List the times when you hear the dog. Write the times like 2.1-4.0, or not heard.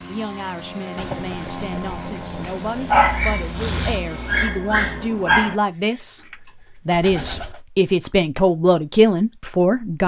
2.9-5.5.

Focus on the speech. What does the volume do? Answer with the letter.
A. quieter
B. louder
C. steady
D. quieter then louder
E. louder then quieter
B.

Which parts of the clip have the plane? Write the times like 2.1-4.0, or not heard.
0.0-4.5.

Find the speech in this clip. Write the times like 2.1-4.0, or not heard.
0.1-10.0.